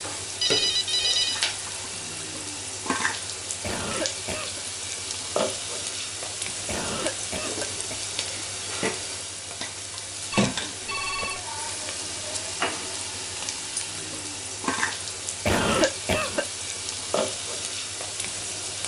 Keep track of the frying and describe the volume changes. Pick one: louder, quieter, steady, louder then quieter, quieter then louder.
steady.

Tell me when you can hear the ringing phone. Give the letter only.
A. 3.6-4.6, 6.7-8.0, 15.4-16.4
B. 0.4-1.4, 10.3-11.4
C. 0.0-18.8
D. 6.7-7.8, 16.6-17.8
B.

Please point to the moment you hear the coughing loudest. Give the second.
16 s.